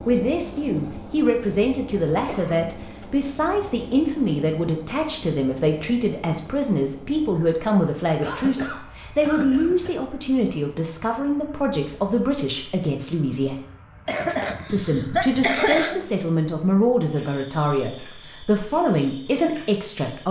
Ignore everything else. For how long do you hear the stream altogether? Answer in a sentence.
The stream can't be heard in this clip.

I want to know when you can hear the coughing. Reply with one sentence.
You can hear the coughing from 2.2 to 3.0 s, from 8.2 to 10.0 s and from 14.1 to 16.0 s.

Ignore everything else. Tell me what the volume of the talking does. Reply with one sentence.
The loudness of the talking stays about the same.